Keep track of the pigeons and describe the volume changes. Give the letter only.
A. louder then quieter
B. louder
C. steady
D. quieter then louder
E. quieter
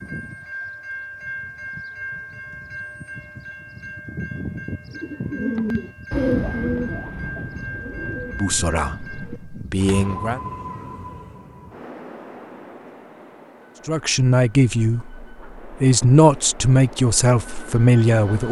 E.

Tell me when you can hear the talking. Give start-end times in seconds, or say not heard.
8.3-10.4, 13.8-18.4.